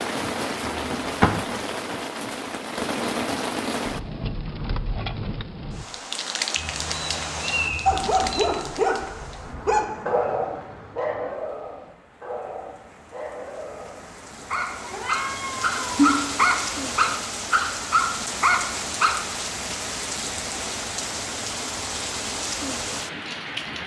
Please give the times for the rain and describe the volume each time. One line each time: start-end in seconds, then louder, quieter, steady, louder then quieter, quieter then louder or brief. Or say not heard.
0.0-23.8 quieter then louder.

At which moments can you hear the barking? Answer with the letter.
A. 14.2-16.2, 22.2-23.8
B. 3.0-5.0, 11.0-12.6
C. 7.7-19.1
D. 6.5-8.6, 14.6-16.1
C.